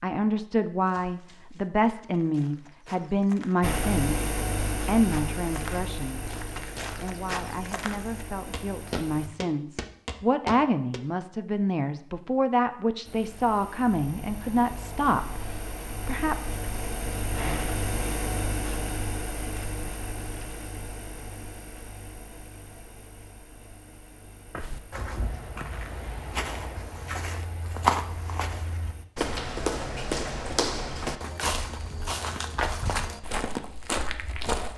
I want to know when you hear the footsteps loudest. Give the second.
28 s.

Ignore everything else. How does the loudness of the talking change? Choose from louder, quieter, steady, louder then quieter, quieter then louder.
quieter then louder.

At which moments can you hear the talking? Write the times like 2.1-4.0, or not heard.
0.0-16.4.